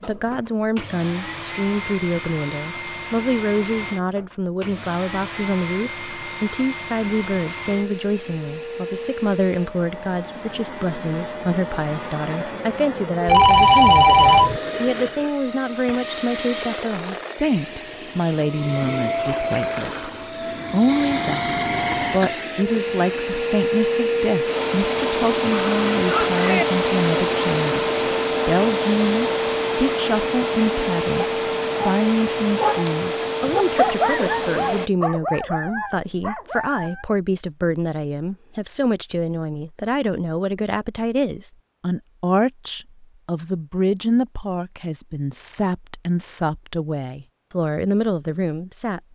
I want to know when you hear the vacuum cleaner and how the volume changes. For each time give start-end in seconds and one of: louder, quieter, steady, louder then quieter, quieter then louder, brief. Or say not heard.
0.0-34.9 louder.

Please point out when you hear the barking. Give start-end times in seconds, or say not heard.
30.6-37.0.